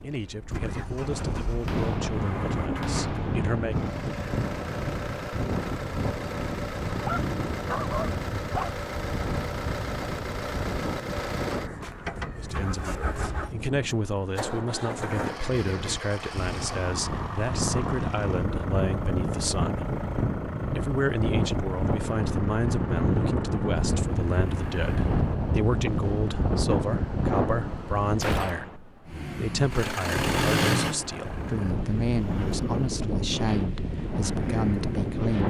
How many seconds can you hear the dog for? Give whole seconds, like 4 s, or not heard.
2 s.